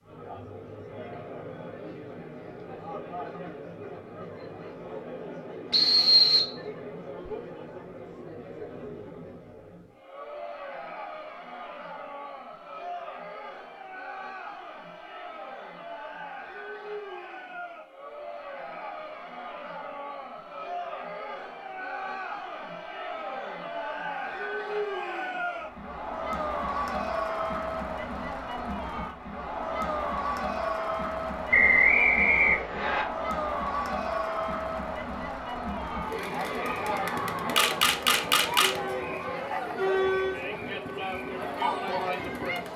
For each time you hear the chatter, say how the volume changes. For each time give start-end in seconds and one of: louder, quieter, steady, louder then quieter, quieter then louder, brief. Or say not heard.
0.0-42.7 louder.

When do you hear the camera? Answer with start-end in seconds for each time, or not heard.
37.5-38.8.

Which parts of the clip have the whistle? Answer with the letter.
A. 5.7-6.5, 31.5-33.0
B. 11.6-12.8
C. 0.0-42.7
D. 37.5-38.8
A.